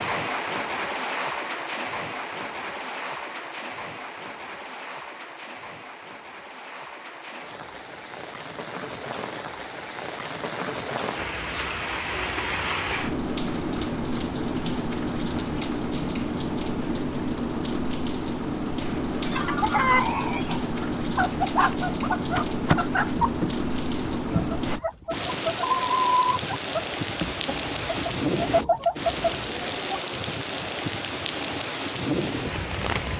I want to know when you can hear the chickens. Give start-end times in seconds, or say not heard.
19.2-30.0.